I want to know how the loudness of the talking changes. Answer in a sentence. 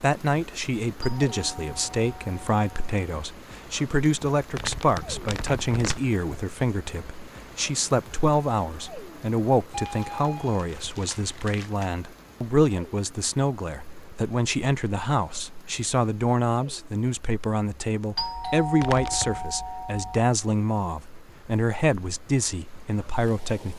The volume of the talking stays about the same.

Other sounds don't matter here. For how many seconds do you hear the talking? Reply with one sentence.
The talking can be heard for 24 seconds in total.